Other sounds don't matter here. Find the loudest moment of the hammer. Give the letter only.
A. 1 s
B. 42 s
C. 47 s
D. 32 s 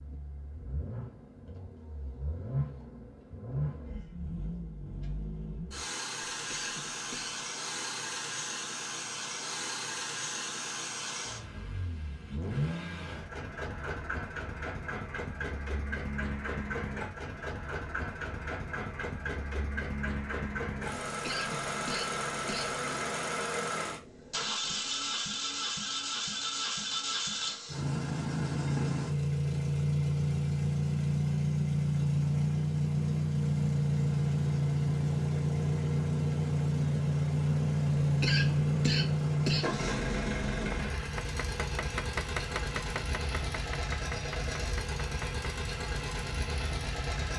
B.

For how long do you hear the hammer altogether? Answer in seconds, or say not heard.
5 s.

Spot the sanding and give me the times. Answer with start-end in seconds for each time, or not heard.
not heard.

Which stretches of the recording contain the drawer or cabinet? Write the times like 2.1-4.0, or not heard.
not heard.